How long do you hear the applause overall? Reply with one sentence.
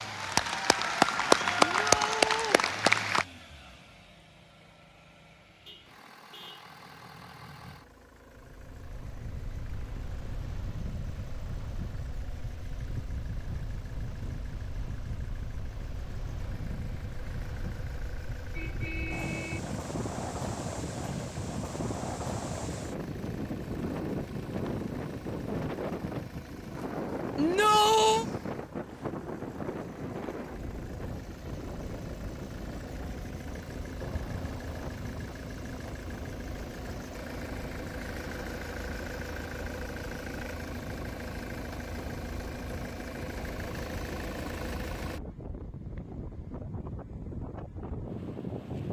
You can hear the applause for 3 seconds altogether.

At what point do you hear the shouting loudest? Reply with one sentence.
The volume of the shouting peaks at 28 seconds.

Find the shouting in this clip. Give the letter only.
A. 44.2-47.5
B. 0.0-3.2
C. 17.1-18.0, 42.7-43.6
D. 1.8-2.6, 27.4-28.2
D.